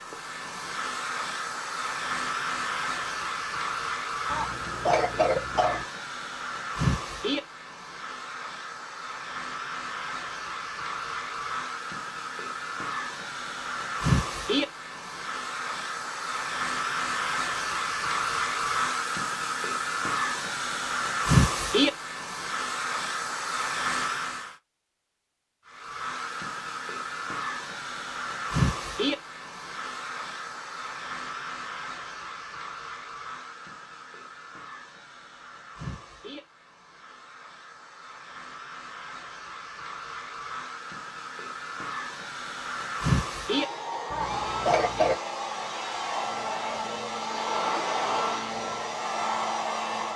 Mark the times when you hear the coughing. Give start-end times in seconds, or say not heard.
4.3-5.8, 44.1-45.1.